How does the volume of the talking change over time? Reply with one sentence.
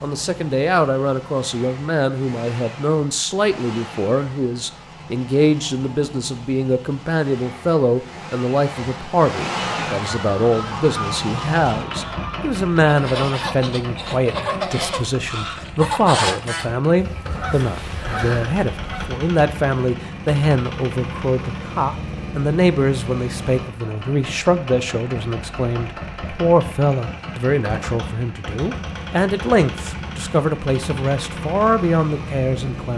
The volume of the talking stays about the same.